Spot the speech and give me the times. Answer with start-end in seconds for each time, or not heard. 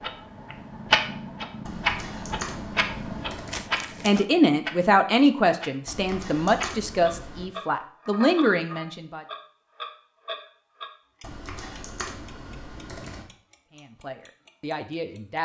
4.0-9.2, 13.8-15.3.